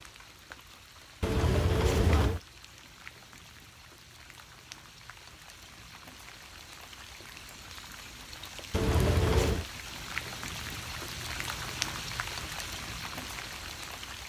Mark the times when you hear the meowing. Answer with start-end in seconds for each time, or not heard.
1.2-2.4, 8.7-9.7.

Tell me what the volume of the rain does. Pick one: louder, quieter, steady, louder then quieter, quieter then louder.
louder.